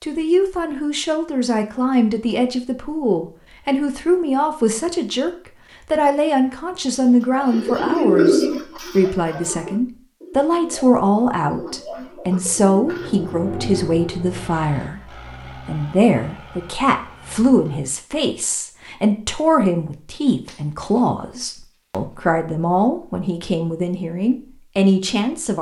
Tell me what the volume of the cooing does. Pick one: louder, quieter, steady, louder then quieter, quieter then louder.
quieter.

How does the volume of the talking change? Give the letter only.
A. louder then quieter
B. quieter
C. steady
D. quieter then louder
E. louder
C.